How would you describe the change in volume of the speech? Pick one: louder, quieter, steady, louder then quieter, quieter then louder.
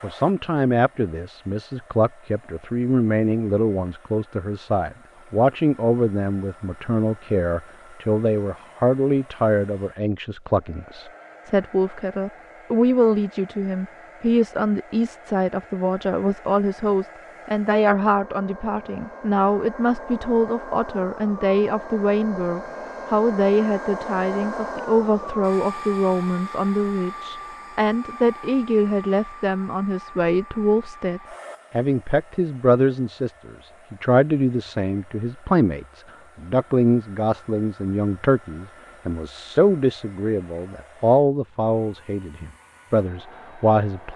steady.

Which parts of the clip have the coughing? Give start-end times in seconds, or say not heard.
not heard.